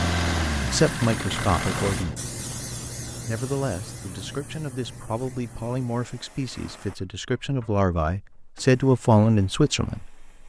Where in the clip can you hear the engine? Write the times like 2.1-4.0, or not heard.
0.0-2.1.